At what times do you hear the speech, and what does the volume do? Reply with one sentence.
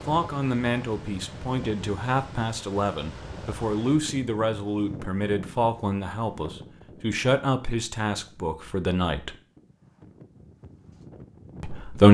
The speech can be heard from 0.1 to 9.3 s, at a steady volume; and briefly from 11.6 to 12.0 s.